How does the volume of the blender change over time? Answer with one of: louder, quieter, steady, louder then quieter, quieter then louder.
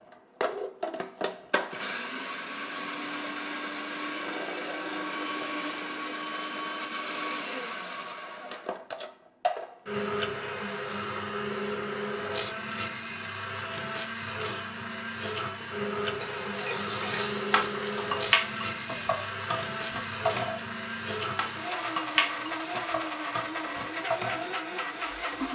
steady.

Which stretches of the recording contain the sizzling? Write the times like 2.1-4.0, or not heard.
15.9-25.5.